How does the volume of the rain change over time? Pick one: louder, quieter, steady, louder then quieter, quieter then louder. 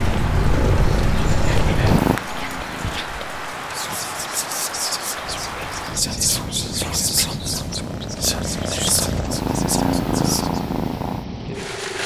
steady.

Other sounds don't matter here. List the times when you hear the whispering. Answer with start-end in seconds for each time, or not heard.
1.1-10.7.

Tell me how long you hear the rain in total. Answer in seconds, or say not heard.
12 s.